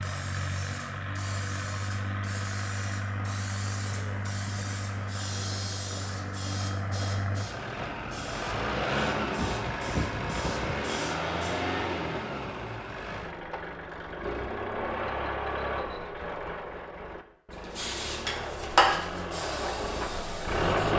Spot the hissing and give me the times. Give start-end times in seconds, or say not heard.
0.0-11.7, 17.5-20.9.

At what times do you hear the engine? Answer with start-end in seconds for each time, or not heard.
0.0-20.9.